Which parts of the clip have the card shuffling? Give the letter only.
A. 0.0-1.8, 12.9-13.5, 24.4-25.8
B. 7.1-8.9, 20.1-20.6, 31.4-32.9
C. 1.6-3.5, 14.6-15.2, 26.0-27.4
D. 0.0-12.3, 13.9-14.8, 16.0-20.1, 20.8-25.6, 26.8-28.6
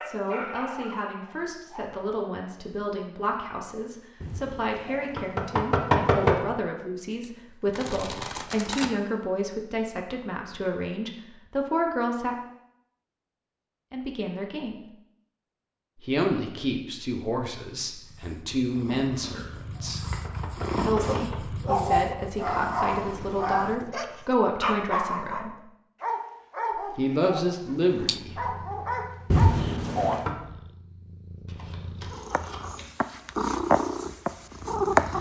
B.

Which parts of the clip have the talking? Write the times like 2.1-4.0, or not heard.
0.0-12.3, 13.9-14.8, 16.0-20.1, 20.8-25.6, 26.8-28.6.